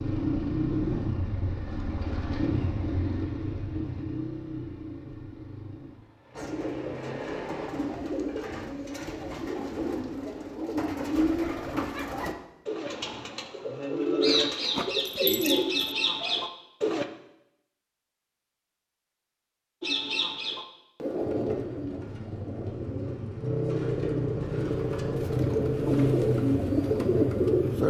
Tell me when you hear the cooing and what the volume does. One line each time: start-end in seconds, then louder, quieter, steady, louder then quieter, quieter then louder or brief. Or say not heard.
6.3-17.1 louder
19.8-27.8 quieter then louder.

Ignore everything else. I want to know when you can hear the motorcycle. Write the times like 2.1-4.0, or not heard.
0.0-7.7, 21.2-27.8.